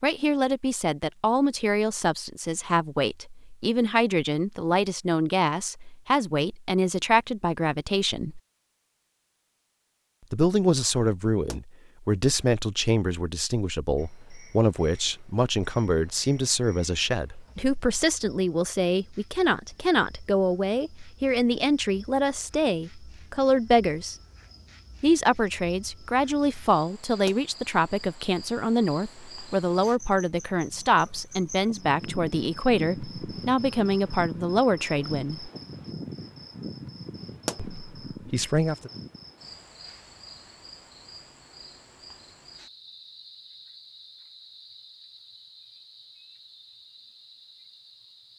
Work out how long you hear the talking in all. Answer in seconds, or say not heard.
34 s.